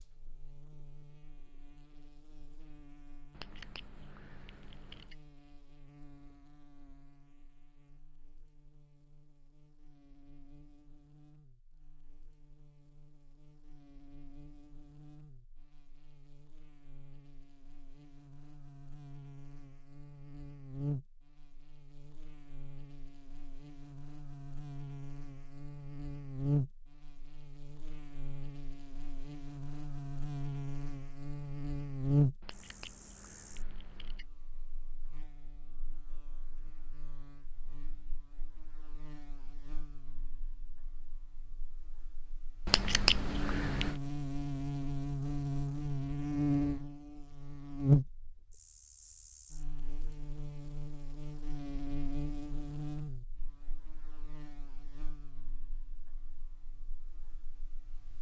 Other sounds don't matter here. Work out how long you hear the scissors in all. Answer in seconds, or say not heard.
5 s.